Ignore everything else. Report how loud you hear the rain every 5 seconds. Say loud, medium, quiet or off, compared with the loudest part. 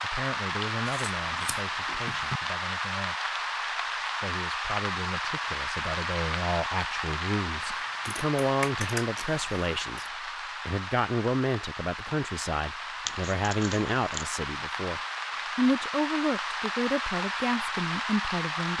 loud, loud, medium, loud.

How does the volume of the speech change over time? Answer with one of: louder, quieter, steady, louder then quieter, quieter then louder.
louder.